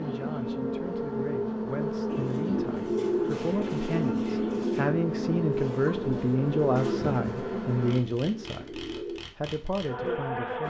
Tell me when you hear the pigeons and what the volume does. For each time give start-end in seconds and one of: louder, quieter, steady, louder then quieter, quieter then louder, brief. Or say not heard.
2.0-9.2 quieter.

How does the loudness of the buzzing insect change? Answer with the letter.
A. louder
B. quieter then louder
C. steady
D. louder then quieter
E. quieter
E.